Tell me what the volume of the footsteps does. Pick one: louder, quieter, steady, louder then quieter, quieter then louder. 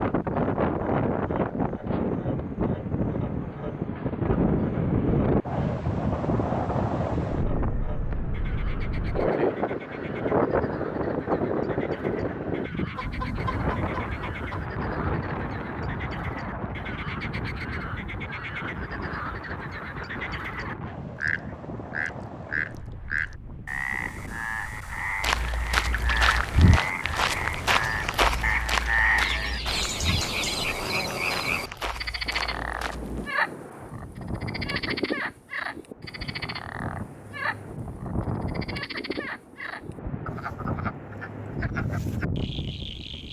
quieter.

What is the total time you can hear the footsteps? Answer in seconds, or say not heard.
8 s.